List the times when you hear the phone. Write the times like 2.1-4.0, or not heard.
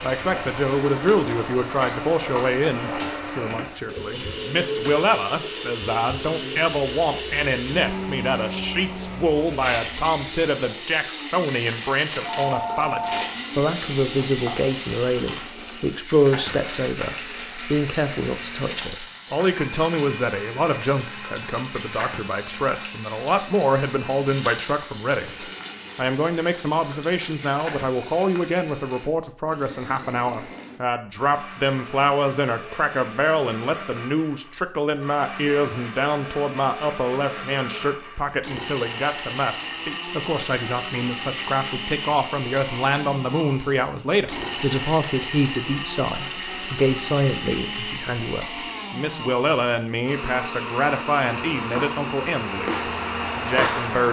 12.2-13.5.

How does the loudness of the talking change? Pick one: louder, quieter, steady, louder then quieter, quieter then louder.
steady.